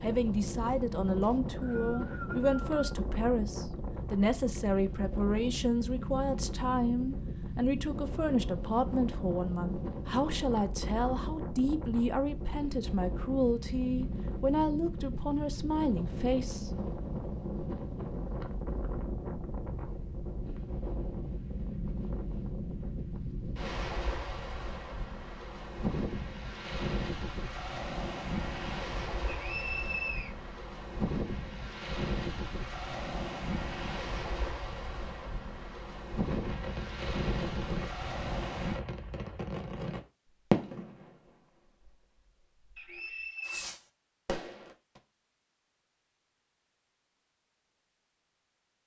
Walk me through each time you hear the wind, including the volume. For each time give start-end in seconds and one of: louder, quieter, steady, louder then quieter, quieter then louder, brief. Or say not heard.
0.0-38.8 steady.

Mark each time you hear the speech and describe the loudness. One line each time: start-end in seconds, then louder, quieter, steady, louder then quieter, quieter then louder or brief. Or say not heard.
0.0-16.7 steady.